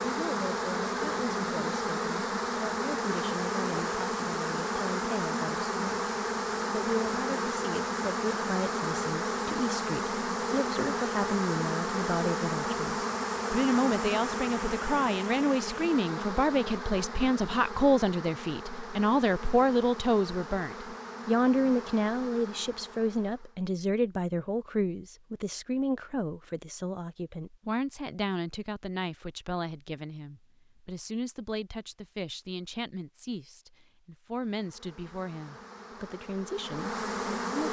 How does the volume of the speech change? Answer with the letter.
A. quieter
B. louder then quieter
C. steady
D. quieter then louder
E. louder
B.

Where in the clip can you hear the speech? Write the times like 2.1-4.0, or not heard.
0.0-6.0, 6.7-37.6.